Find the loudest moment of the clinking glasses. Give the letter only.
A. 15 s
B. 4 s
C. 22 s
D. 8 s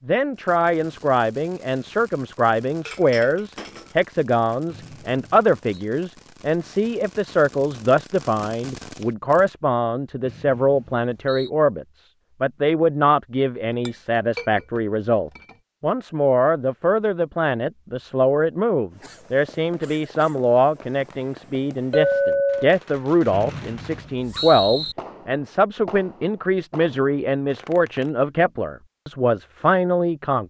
C.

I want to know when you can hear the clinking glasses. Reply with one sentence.
The clinking glasses can be heard from 2.9 to 4.0 s, from 13.8 to 15.6 s and from 21.9 to 22.8 s.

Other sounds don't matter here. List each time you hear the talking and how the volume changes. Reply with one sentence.
The talking can be heard from 0.1 to 30.4 s, at a steady volume.